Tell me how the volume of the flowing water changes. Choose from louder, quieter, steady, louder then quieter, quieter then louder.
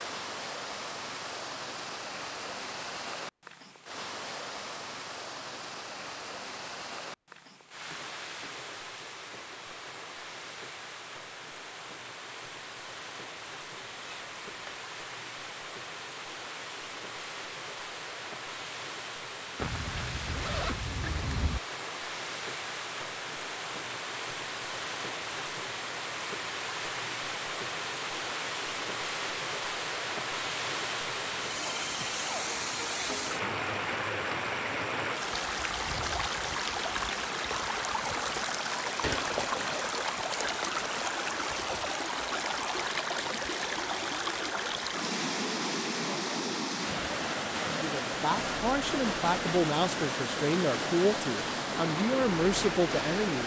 louder.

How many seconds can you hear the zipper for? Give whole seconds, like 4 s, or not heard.
4 s.